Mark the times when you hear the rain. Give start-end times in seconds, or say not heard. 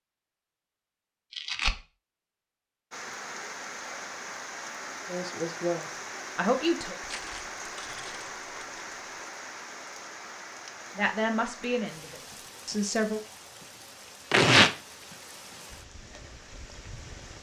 2.9-17.3.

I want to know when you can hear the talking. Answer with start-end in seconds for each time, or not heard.
5.0-7.0, 10.9-13.2.